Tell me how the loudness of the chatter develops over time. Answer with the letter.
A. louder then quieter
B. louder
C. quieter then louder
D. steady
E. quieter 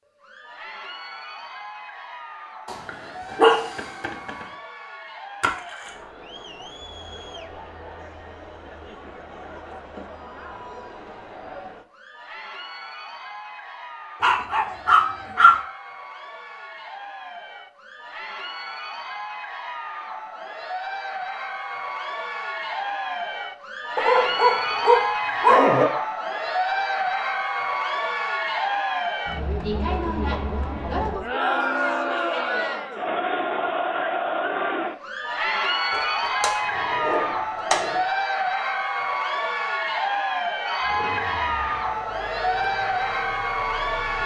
B.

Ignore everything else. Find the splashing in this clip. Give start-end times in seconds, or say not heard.
5.4-6.0.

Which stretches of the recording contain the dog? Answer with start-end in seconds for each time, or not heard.
2.6-4.5, 14.2-15.6, 23.9-25.9, 35.9-38.0.